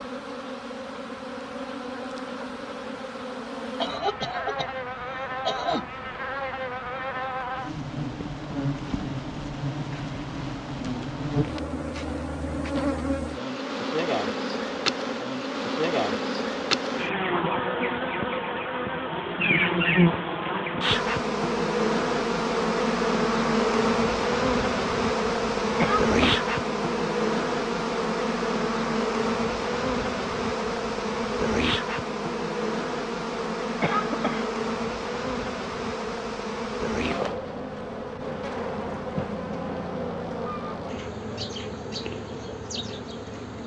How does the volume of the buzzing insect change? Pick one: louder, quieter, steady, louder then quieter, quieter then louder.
louder then quieter.